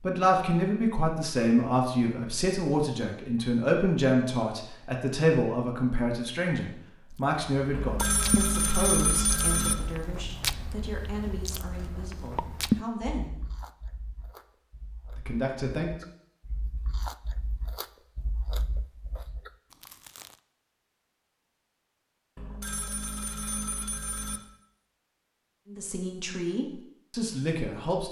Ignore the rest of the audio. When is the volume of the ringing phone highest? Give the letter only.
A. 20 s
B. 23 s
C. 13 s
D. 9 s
D.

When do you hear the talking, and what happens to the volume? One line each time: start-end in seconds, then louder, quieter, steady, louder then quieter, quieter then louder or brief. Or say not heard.
0.0-13.3 quieter
15.1-15.9 brief
25.6-28.0 brief.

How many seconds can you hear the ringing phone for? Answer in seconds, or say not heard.
4 s.